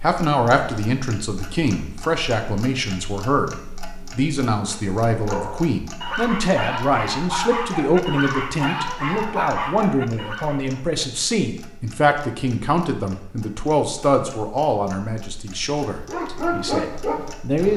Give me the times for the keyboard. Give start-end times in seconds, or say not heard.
not heard.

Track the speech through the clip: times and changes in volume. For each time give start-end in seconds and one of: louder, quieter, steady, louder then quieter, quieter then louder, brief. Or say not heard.
0.0-17.7 steady.